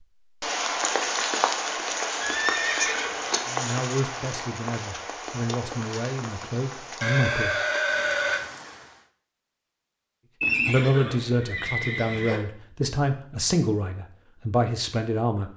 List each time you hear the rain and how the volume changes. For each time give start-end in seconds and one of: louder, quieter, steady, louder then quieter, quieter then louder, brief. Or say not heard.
0.2-9.1 quieter.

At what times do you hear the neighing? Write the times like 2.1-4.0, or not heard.
2.1-3.4, 7.0-8.4, 10.4-12.4.